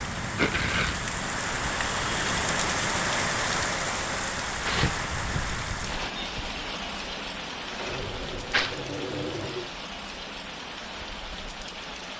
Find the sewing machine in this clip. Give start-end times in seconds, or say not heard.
7.7-9.8.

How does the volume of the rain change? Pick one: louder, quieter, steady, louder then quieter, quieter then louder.
quieter.